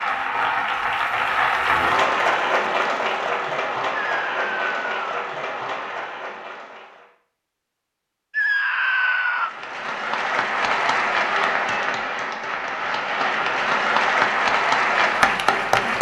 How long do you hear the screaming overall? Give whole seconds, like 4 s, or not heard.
2 s.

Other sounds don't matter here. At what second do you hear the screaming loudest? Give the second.
9 s.